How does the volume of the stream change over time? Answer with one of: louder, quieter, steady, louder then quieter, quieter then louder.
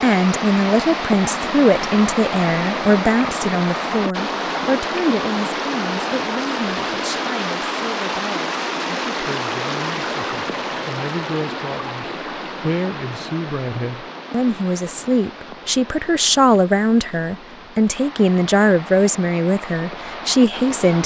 quieter.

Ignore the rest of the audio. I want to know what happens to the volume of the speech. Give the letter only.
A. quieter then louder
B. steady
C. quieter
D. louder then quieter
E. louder
A.